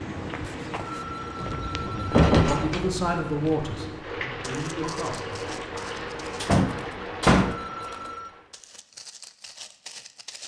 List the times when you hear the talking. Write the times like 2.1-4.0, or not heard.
1.8-5.7.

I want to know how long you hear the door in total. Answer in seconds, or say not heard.
3 s.